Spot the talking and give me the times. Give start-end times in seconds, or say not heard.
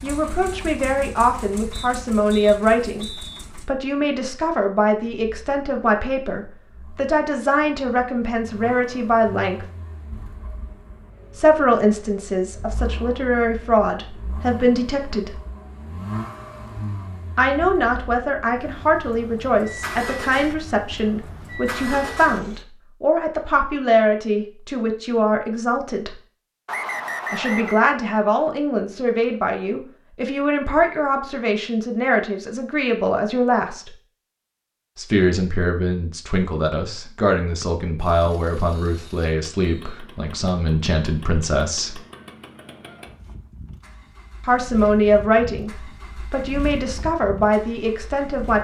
0.0-9.7, 11.3-15.3, 17.4-26.2, 27.3-33.9, 35.0-42.0, 44.5-48.5.